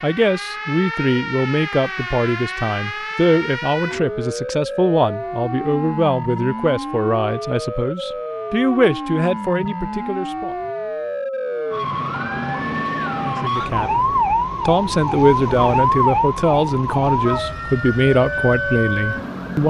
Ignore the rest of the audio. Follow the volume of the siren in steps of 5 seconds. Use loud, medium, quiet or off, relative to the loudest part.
medium, medium, loud, loud.